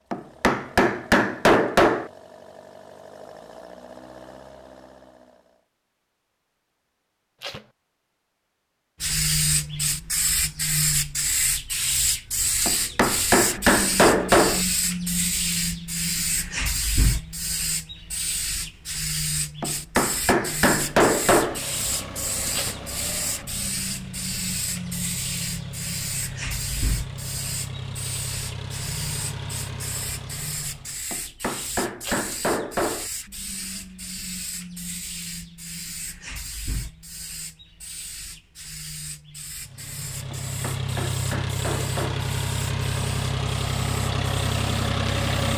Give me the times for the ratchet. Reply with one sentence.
You can't hear the ratchet here.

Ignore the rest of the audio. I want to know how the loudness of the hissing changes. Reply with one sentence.
The loudness of the hissing goes down.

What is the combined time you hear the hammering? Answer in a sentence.
You can hear the hammering for 10 seconds altogether.